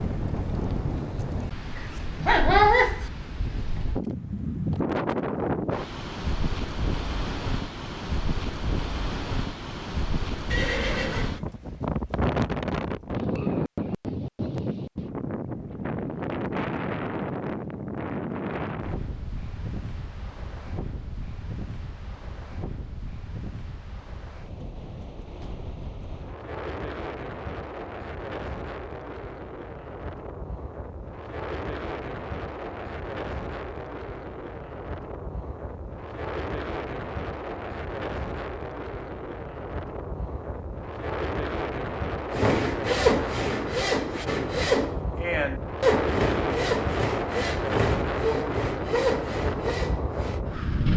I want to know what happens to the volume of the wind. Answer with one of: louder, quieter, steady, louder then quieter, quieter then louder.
quieter then louder.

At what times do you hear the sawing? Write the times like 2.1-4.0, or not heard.
42.3-50.4.